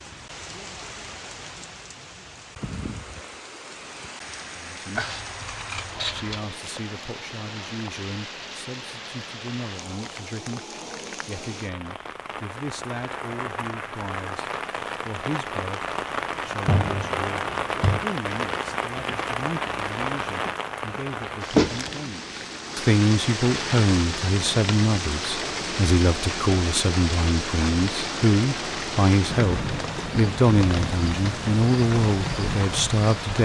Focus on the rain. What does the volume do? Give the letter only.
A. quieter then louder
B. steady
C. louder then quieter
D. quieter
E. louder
E.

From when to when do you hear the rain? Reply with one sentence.
The rain can be heard from 0.0 to 33.4 s.